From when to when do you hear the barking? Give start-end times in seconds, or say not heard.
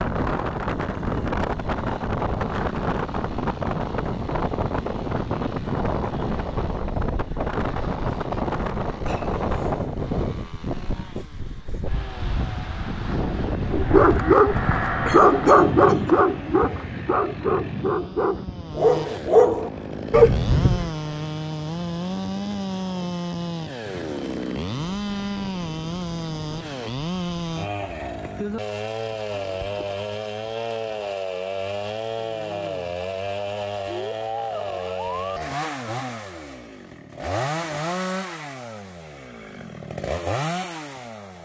13.7-20.9.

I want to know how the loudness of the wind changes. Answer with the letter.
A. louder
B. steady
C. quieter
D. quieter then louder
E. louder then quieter
C.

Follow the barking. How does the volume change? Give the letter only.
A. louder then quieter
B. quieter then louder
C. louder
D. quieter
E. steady
B.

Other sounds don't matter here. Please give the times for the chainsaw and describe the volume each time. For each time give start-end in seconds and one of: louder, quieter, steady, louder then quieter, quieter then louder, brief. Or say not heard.
0.0-41.3 louder.